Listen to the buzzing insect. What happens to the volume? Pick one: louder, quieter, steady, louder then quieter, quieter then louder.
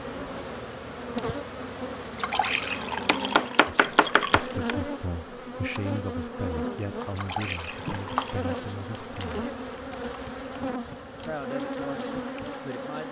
steady.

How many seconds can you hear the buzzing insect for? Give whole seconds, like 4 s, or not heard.
13 s.